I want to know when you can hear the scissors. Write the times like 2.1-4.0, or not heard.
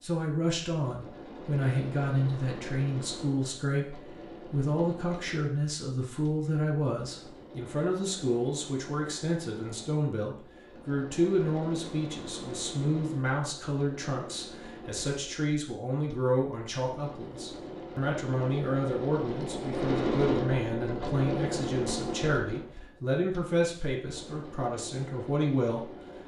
not heard.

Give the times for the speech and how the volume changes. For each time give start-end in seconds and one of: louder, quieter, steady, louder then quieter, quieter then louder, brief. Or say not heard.
0.0-25.9 steady.